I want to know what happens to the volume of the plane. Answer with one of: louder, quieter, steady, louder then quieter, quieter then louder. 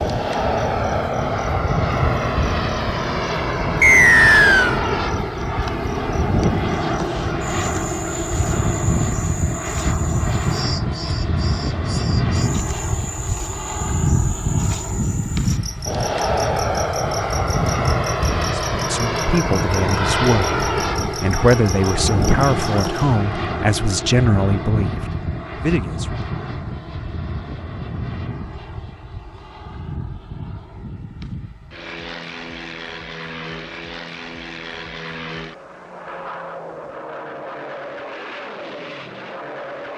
quieter.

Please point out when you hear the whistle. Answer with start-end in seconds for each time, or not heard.
3.8-4.8.